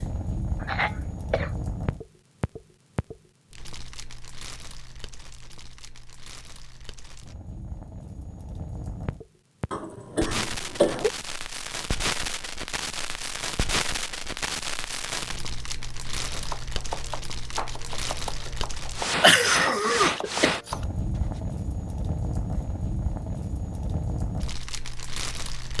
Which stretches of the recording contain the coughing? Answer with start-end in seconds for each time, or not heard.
0.6-1.5, 9.7-11.1, 19.2-20.8.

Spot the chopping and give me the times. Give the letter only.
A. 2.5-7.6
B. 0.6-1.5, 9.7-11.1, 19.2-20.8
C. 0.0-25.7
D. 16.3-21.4
D.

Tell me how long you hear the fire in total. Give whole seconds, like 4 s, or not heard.
26 s.